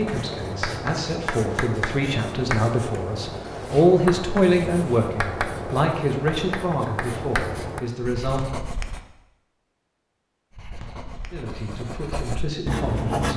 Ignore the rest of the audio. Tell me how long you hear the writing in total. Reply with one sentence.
You can hear the writing for 12 seconds altogether.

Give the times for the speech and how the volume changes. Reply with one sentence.
The speech can be heard from 0.0 to 8.7 s, getting louder then quieter; and briefly from 11.3 to 13.3 s.